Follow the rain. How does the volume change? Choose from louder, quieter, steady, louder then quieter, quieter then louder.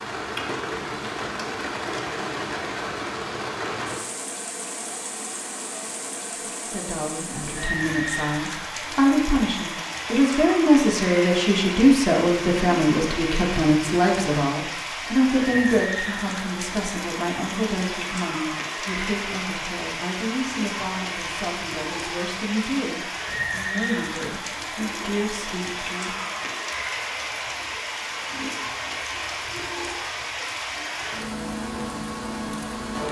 steady.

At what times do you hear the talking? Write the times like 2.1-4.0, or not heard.
6.4-26.4.